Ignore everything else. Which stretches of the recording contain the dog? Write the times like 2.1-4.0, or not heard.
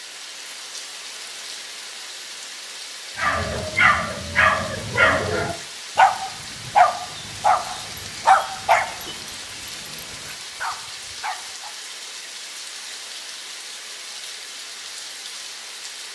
3.1-11.8.